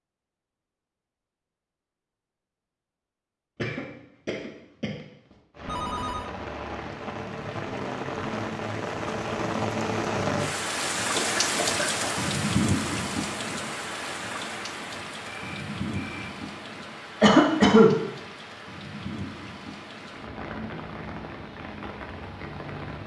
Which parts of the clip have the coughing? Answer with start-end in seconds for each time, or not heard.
3.5-5.0, 11.2-12.3, 17.2-17.9.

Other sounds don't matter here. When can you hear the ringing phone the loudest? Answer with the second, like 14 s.
6 s.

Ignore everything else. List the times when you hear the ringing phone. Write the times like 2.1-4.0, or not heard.
5.7-6.3, 15.2-16.4.